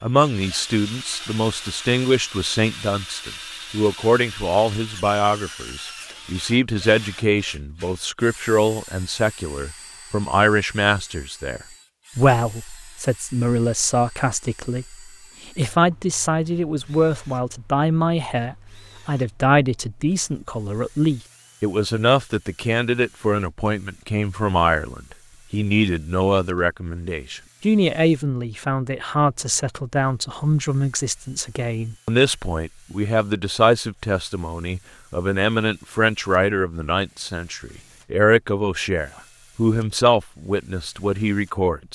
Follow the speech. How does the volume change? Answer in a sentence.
The volume of the speech stays about the same.